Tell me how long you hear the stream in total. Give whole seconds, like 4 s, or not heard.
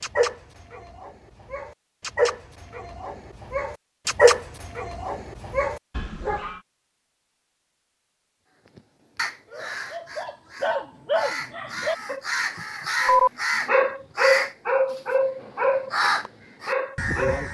not heard.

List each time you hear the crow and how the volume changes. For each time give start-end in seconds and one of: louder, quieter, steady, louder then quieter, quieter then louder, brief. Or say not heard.
8.7-17.4 louder.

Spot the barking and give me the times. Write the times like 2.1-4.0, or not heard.
0.0-6.6, 9.5-17.4.